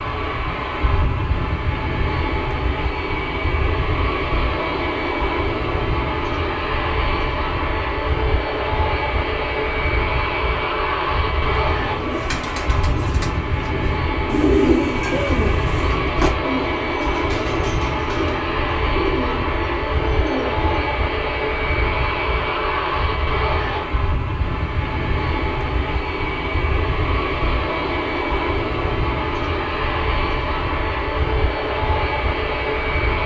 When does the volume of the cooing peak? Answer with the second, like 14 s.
15 s.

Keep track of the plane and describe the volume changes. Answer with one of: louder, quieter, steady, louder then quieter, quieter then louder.
steady.